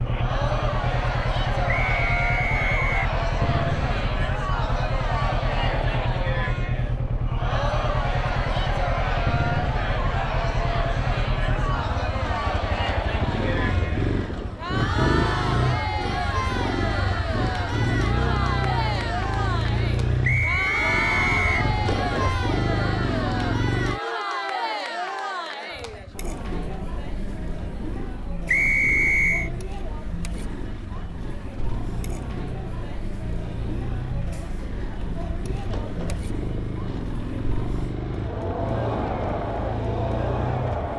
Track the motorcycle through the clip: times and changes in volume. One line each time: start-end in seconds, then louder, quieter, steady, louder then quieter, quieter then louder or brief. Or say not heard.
0.0-24.0 steady
25.7-40.9 louder.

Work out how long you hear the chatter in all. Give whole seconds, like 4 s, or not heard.
41 s.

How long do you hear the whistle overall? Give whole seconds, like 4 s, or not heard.
4 s.